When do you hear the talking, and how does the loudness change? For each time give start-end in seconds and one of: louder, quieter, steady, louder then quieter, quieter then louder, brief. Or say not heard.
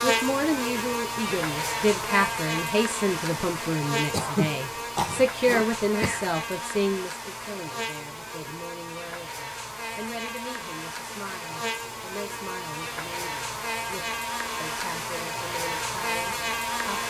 0.0-17.0 quieter.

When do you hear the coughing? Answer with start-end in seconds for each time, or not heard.
4.1-6.2.